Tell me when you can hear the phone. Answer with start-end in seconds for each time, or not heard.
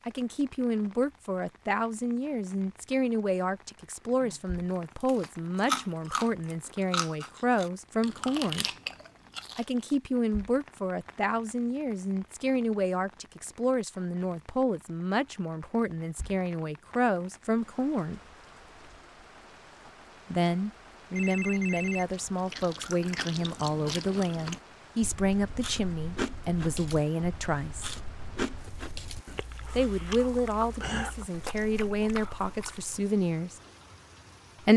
21.1-22.1.